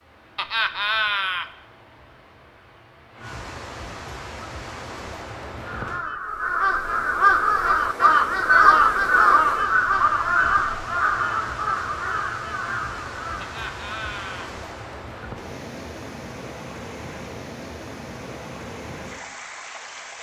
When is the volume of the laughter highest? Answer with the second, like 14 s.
1 s.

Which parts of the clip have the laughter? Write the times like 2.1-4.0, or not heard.
0.3-1.5, 13.4-14.5.